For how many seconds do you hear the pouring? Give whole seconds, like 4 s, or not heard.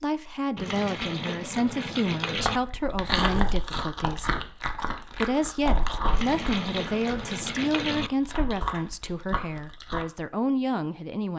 4 s.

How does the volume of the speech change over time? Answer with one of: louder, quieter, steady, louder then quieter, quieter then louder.
steady.